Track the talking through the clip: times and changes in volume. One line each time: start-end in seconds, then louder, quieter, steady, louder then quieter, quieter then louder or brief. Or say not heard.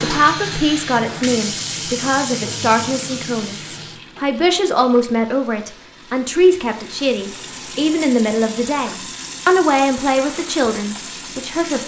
0.0-11.8 steady.